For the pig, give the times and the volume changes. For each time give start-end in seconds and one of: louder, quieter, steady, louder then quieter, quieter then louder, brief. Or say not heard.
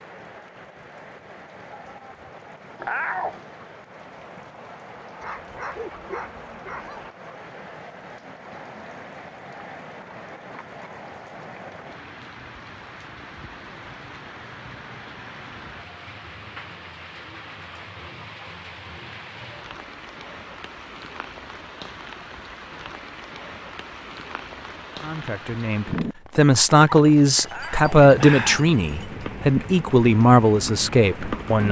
not heard.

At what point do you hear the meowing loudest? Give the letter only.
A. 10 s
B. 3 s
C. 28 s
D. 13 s
B.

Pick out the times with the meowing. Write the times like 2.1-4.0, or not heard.
2.8-3.4, 27.4-27.9.